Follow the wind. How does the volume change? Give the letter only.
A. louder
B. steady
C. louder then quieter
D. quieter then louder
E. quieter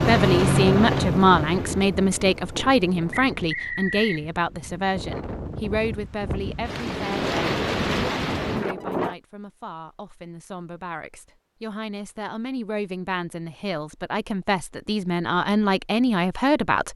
D.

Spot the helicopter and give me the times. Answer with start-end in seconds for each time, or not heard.
0.0-1.9.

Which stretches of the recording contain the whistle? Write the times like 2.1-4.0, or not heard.
3.1-4.2.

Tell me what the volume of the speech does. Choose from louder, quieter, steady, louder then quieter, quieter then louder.
quieter then louder.